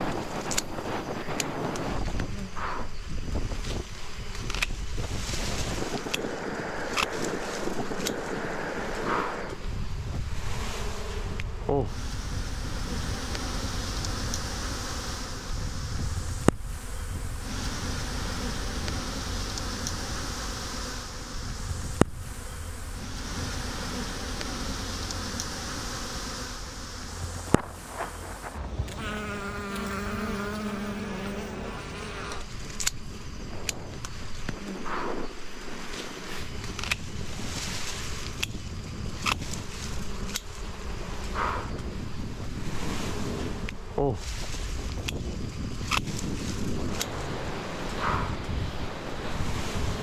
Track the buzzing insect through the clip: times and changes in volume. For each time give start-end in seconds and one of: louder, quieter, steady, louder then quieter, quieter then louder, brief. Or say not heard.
0.0-49.9 steady.